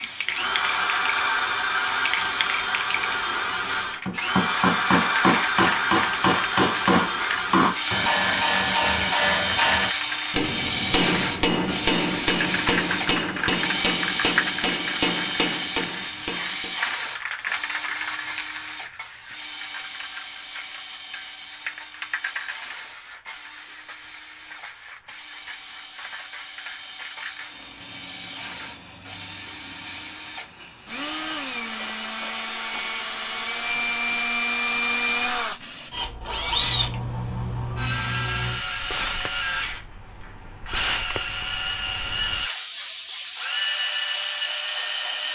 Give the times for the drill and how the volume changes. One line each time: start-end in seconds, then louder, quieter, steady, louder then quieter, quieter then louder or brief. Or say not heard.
0.2-45.3 quieter then louder.